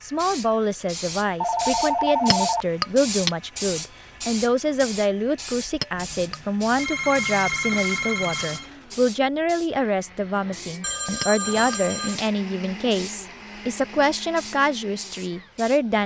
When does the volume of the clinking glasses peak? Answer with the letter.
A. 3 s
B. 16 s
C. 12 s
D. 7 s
A.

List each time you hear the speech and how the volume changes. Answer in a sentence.
The speech can be heard from 0.0 to 16.0 s, at a steady volume.